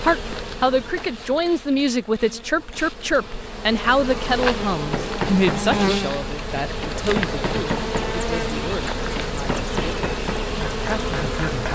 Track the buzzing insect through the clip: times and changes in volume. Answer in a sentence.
You can hear the buzzing insect from 0.0 to 11.7 s, getting louder.